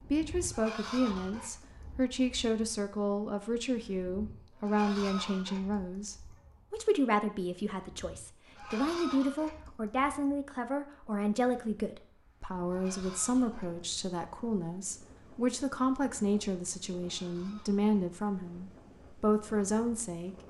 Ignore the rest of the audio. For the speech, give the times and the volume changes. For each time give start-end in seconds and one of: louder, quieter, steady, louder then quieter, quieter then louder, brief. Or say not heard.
0.1-20.4 steady.